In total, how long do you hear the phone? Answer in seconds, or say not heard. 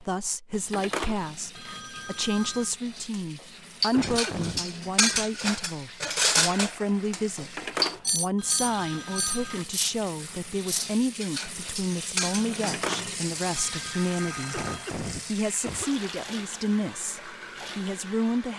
7 s.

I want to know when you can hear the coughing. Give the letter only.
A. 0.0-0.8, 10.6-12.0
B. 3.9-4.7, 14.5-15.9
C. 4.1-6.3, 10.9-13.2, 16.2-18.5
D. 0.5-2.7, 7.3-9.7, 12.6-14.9
B.